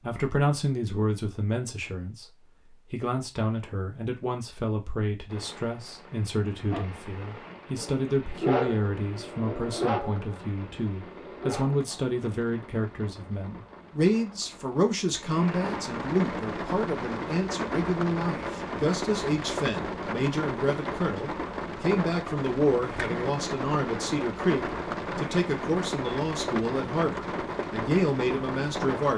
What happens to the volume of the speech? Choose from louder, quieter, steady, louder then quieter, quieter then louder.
steady.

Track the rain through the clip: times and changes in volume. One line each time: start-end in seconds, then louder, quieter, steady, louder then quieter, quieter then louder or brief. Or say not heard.
5.2-29.1 louder.